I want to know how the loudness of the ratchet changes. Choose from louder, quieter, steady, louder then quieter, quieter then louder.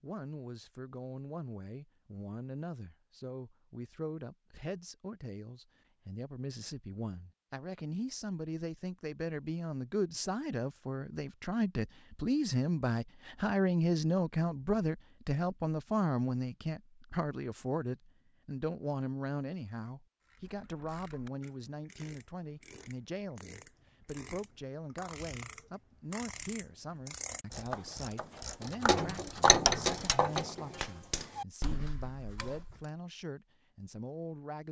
louder then quieter.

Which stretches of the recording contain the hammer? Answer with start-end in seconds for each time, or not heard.
not heard.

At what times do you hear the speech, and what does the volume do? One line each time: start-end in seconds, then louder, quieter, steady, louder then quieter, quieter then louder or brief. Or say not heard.
0.0-34.6 louder then quieter.